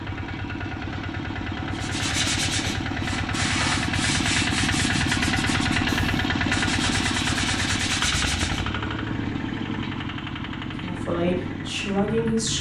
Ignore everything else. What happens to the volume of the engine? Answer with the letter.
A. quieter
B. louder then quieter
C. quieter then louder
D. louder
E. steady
B.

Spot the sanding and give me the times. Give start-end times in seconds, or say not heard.
1.7-8.7.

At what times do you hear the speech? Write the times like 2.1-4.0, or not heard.
10.8-12.5.